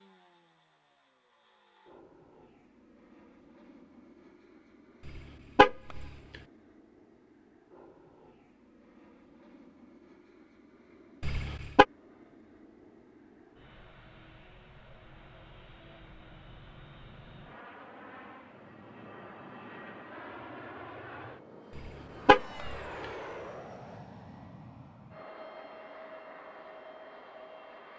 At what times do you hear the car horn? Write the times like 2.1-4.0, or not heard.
5.0-6.1, 11.2-11.8, 21.8-22.8.